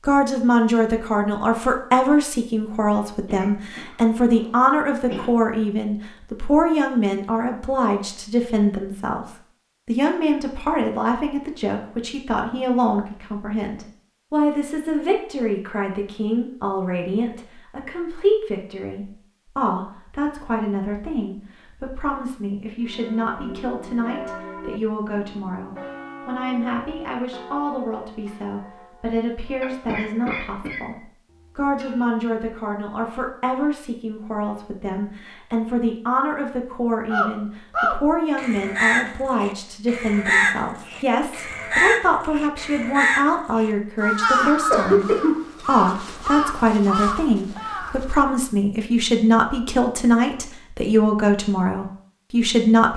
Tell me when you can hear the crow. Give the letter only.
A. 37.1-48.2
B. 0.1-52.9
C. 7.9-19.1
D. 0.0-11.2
A.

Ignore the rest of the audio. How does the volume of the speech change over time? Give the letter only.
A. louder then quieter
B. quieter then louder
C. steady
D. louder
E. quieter
B.